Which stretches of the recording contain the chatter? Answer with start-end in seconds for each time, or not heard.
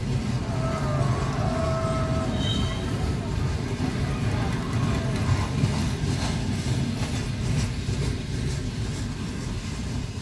0.1-5.8.